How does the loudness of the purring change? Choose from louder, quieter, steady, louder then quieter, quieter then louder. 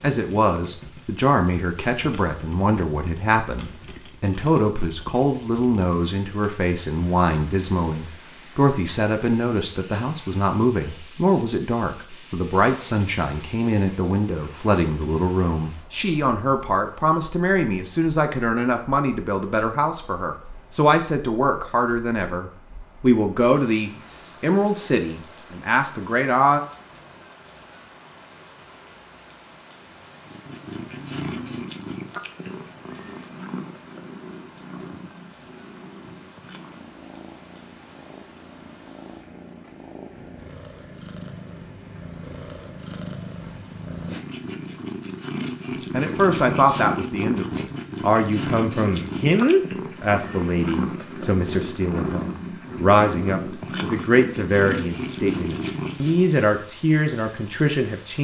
quieter then louder.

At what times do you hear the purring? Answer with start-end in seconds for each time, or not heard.
30.2-56.3.